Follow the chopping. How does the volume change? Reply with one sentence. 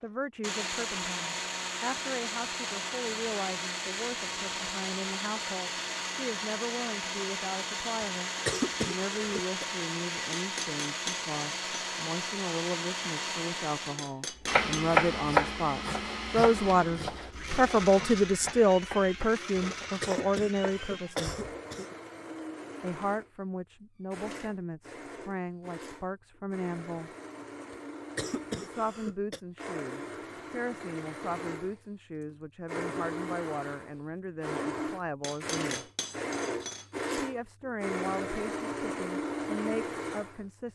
The loudness of the chopping goes down.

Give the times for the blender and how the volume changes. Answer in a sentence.
You can hear the blender from 0.4 to 40.7 s, getting quieter then louder.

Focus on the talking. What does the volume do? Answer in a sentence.
The volume of the talking goes up, then down.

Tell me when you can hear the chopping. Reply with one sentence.
You can hear the chopping from 14.5 to 21.7 s.